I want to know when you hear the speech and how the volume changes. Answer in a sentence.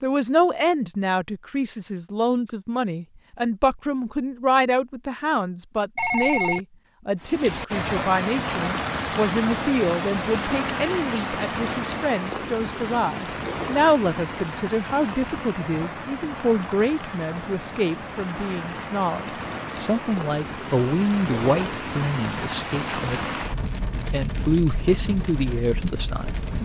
You can hear the speech from 0.0 to 23.2 s, at a steady volume; and briefly from 24.1 to 26.6 s.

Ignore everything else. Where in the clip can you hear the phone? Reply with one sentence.
The phone can be heard from 6.0 to 6.6 s.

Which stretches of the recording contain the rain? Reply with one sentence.
You can hear the rain from 7.2 to 26.6 s.